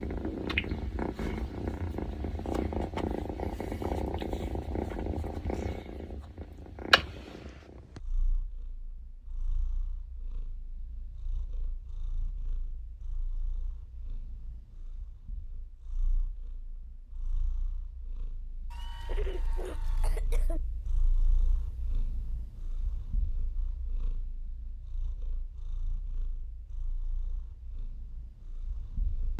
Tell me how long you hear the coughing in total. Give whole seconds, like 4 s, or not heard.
2 s.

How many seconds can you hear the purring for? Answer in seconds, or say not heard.
29 s.